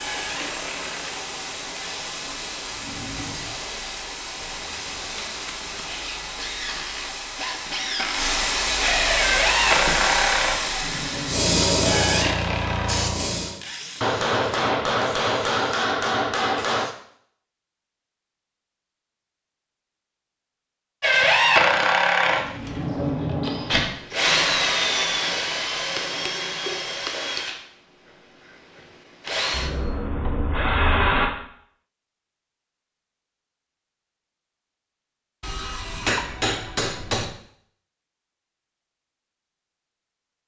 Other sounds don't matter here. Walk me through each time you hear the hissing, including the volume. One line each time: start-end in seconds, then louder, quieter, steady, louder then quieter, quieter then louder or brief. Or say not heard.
0.0-13.6 louder.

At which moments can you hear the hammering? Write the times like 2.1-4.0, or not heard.
4.4-5.9, 14.0-16.9, 25.9-27.4, 35.4-37.3.